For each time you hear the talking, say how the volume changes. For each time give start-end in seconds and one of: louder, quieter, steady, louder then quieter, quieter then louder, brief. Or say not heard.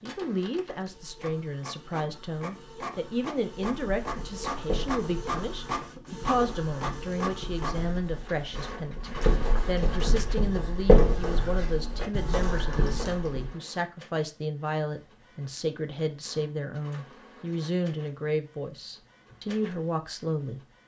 0.0-20.6 steady.